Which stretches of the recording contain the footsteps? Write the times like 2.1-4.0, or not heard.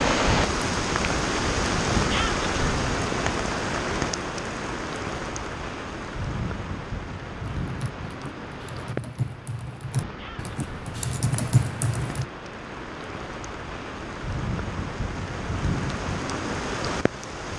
not heard.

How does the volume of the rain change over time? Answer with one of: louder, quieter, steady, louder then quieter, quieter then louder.
quieter then louder.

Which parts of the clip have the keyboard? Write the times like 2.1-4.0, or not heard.
7.6-12.2.